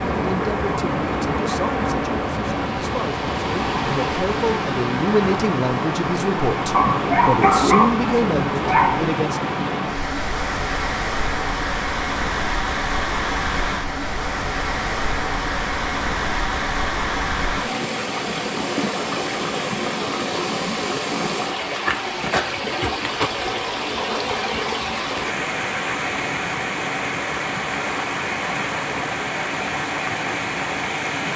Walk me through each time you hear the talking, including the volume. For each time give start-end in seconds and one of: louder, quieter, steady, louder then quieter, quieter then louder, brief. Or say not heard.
0.1-9.4 louder.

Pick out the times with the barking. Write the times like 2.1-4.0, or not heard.
6.7-9.1.